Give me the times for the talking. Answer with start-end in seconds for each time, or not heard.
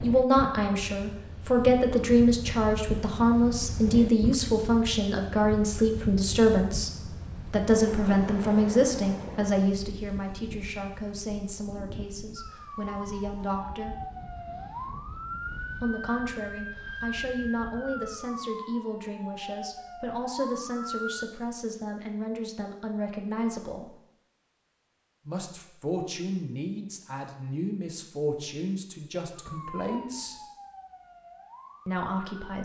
0.0-14.0, 15.8-23.9, 25.2-30.4, 31.9-32.6.